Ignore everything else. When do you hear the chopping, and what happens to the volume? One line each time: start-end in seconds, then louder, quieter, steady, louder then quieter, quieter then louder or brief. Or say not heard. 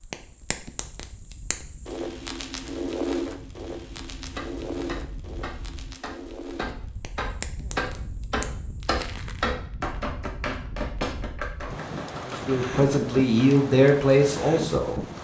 4.3-13.4 louder then quieter.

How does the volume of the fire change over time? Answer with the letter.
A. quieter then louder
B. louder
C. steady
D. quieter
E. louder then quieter
E.